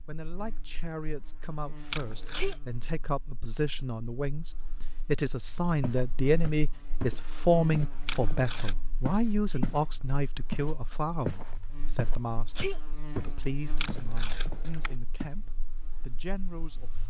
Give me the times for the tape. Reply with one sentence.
You can hear the tape from 1.9 to 2.5 s, from 8.1 to 8.8 s and from 13.8 to 14.9 s.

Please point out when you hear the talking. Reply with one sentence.
The talking can be heard from 0.1 to 17.0 s.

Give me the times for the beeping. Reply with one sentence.
The beeping can't be heard in this clip.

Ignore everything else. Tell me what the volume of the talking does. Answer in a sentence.
The volume of the talking goes up, then down.